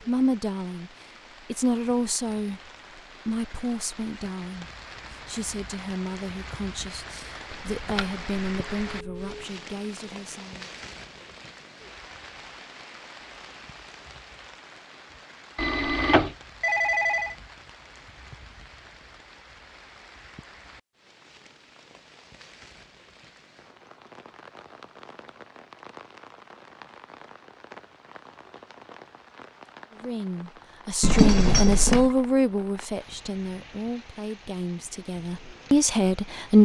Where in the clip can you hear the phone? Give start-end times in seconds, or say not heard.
7.5-9.4, 15.6-17.4, 31.0-32.1.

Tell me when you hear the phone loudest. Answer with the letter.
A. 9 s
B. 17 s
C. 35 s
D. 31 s
D.